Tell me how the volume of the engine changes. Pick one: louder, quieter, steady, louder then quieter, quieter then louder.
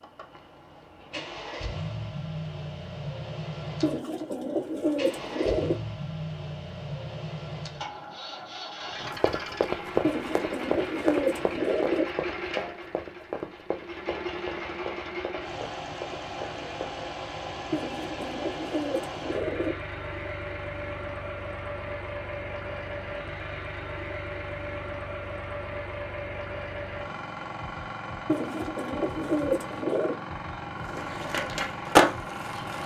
steady.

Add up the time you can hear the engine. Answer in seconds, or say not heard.
33 s.